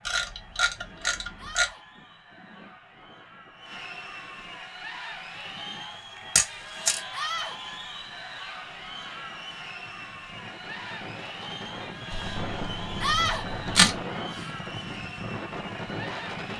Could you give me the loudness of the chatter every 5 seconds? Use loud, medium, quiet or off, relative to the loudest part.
medium, loud, loud, loud.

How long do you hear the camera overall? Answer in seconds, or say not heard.
4 s.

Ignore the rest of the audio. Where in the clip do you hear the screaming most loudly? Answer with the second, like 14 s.
13 s.